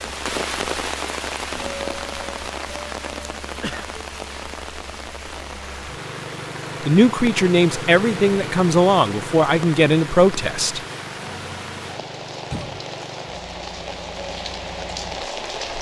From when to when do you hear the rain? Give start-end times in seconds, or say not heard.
0.0-15.7.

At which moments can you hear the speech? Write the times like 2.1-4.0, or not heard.
6.8-10.8.